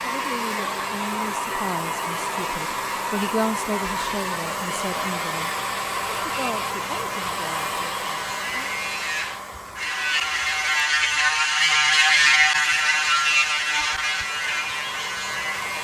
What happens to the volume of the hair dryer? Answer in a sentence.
The loudness of the hair dryer goes down.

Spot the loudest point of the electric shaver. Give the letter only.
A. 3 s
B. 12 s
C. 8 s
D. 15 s
B.